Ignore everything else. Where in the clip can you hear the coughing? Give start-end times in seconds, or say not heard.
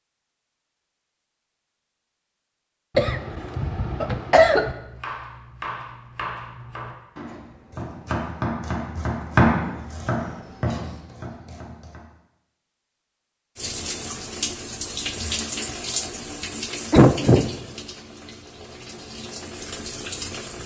3.0-4.8, 16.9-17.5.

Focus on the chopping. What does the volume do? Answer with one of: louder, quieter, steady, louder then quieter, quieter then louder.
louder then quieter.